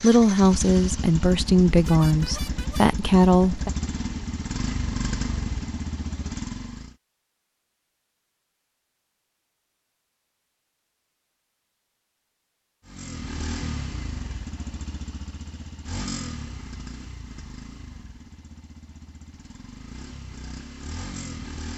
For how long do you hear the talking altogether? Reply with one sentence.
You can hear the talking for 4 seconds altogether.